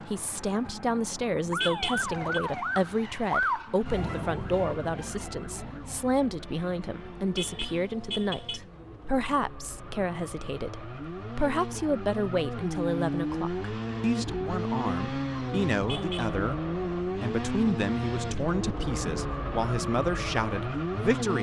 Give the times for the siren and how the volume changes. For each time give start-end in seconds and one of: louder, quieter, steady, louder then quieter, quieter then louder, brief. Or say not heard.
0.0-7.8 louder then quieter.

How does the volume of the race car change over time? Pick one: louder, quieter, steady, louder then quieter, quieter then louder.
louder.